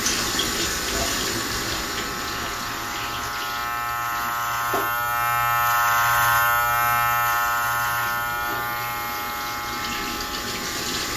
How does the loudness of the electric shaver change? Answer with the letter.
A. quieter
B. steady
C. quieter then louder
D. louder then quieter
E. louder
D.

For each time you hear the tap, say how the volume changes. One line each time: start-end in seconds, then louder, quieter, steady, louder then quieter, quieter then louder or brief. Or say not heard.
0.0-11.1 quieter then louder.